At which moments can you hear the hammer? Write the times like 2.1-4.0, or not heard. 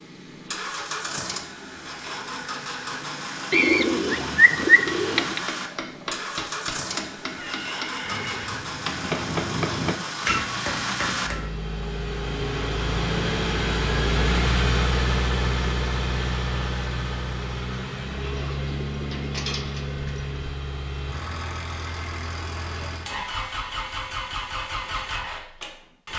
4.7-11.7.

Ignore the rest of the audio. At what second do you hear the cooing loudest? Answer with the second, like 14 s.
5 s.